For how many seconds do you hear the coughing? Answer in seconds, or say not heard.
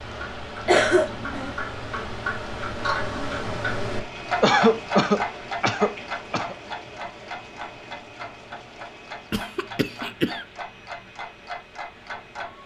4 s.